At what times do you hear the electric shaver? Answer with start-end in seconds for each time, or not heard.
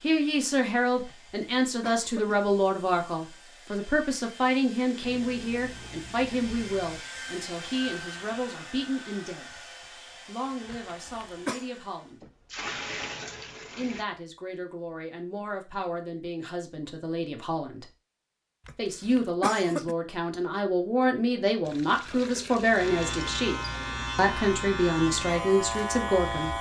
22.6-26.5.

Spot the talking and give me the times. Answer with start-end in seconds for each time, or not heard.
0.0-9.6, 10.2-12.2, 13.8-17.9, 18.8-26.5.